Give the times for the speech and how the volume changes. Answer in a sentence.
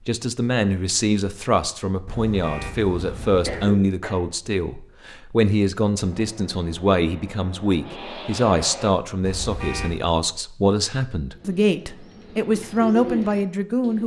You can hear the speech from 0.1 to 14.0 s, at a steady volume.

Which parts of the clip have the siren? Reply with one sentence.
The siren can't be heard in this clip.